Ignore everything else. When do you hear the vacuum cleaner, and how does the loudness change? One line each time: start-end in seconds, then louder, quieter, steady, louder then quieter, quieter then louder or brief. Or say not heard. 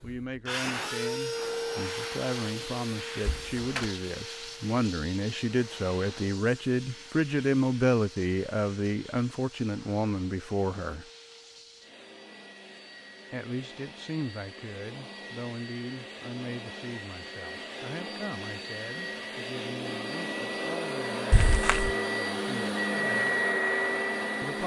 0.0-24.6 quieter then louder.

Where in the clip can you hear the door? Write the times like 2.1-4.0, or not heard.
3.2-3.9, 21.3-21.9.